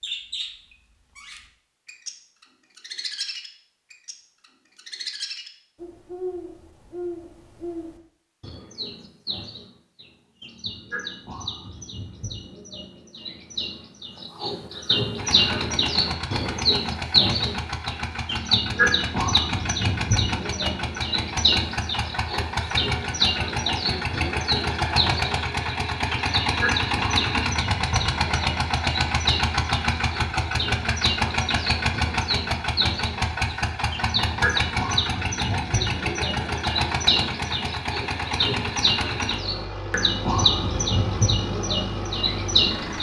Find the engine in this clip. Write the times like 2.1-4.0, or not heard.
15.2-42.9.